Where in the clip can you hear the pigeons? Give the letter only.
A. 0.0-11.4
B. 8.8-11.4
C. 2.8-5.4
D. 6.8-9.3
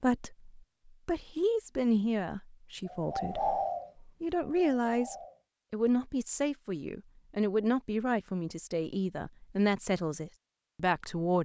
C.